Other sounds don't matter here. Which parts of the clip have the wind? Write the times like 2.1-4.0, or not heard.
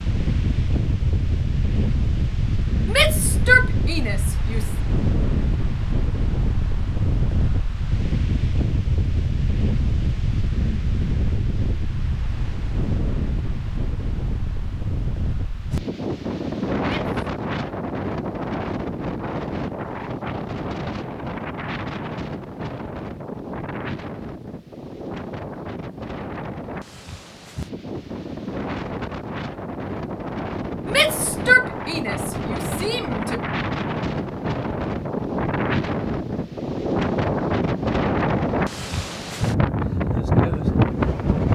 0.0-41.4.